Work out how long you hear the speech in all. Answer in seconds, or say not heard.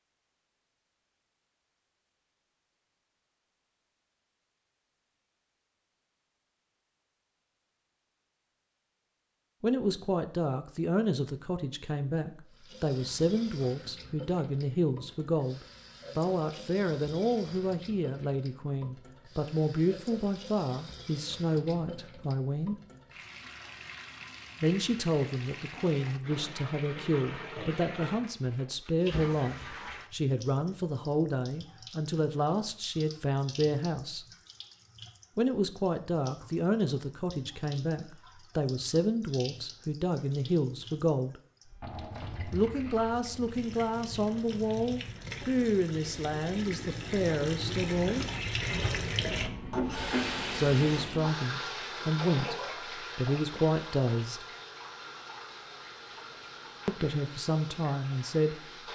41 s.